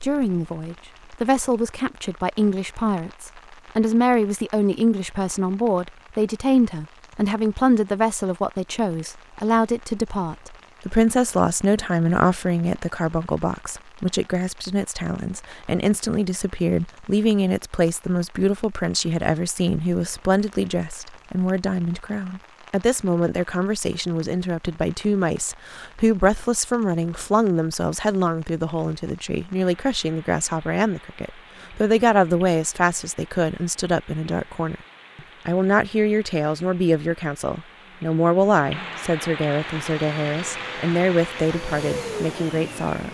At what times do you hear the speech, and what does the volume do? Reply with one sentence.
The speech can be heard from 0.0 to 43.0 s, at a steady volume.